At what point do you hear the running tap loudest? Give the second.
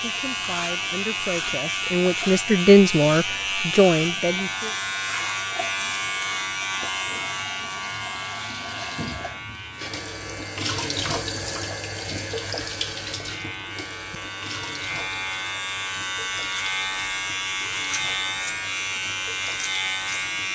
11 s.